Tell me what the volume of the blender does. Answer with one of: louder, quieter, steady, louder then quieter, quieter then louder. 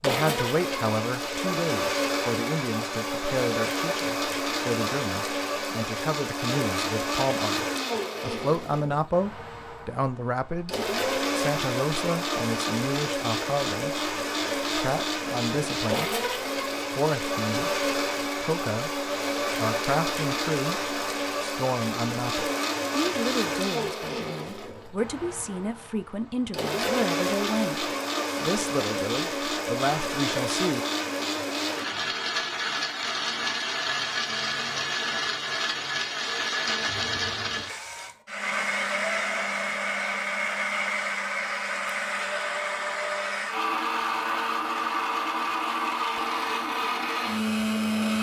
steady.